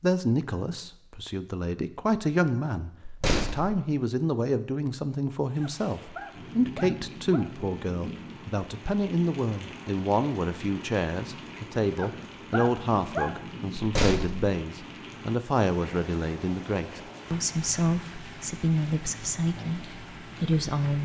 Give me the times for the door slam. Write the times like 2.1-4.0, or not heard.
3.0-3.8, 13.8-14.5.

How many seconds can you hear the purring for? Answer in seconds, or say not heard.
not heard.